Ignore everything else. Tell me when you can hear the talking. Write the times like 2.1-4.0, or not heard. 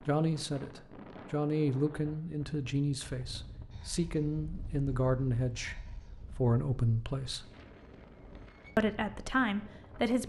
0.1-7.5, 8.8-10.2.